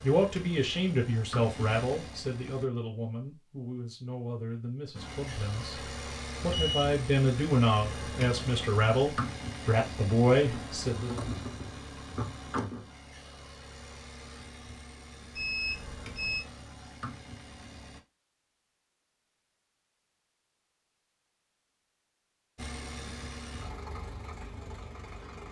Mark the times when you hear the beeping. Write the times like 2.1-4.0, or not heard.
6.4-6.8, 15.3-16.4.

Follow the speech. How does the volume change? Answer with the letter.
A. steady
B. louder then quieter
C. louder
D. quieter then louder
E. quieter
D.